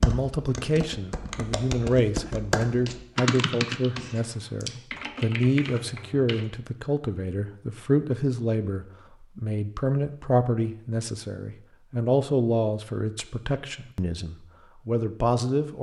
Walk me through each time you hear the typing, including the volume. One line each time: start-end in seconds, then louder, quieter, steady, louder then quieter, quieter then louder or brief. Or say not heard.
0.0-6.5 louder then quieter.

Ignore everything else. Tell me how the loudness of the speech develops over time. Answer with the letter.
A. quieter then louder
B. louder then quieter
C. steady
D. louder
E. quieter
C.